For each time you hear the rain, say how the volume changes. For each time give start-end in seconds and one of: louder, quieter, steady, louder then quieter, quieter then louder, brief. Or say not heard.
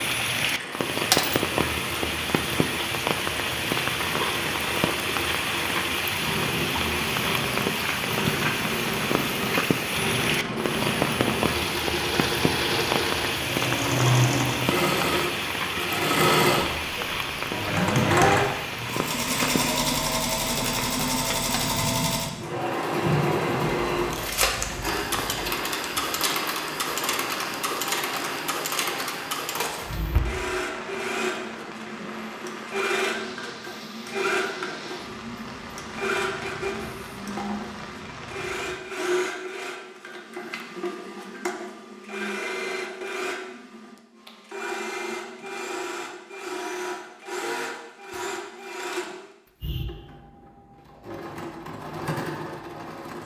0.0-38.9 quieter.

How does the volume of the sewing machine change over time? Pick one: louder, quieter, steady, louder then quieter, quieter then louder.
louder then quieter.